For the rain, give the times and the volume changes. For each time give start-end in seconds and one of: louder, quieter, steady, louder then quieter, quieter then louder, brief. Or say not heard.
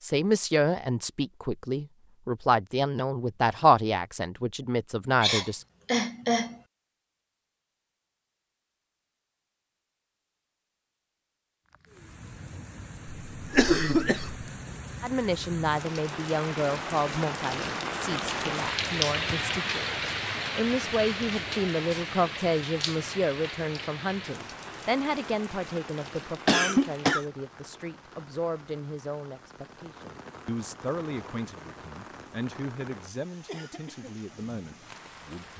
11.7-35.5 louder then quieter.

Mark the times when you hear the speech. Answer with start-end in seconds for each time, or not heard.
0.0-5.7, 15.0-35.5.